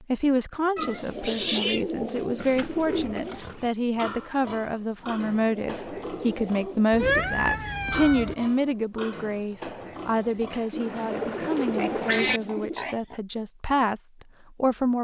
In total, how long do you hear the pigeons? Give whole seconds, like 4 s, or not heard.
7 s.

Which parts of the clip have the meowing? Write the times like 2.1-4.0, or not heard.
0.8-1.8, 6.9-8.3, 10.5-12.4.